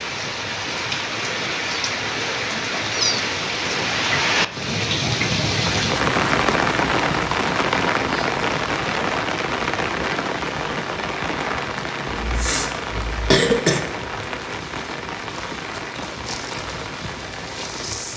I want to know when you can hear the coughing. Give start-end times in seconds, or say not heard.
12.1-13.8.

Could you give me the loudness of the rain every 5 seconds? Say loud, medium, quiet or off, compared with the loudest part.
loud, loud, medium, medium.